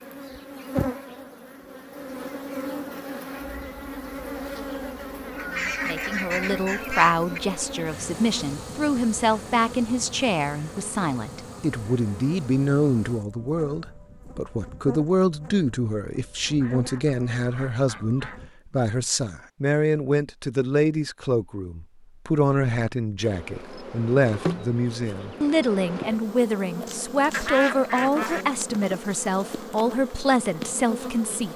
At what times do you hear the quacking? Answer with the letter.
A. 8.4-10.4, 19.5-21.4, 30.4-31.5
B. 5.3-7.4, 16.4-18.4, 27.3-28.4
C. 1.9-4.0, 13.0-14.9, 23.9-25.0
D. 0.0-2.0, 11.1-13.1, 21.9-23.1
B.